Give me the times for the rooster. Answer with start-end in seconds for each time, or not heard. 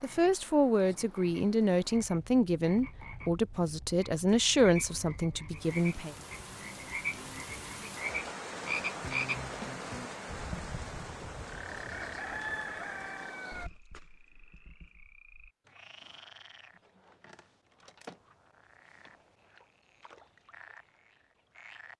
11.7-13.7.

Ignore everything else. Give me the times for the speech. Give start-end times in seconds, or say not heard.
0.0-6.2.